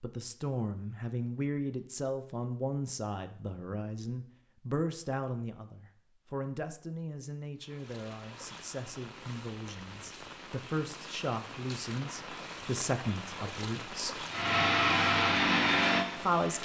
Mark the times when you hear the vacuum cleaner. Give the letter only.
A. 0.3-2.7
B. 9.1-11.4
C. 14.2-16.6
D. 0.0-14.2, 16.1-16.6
C.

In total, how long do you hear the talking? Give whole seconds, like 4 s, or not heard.
15 s.